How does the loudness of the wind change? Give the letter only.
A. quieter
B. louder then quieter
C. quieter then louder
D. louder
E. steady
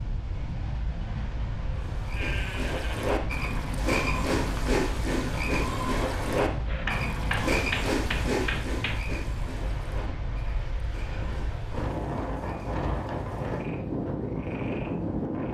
D.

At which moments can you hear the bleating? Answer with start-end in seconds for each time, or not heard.
2.1-7.5.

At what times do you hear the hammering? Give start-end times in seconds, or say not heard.
6.7-9.1.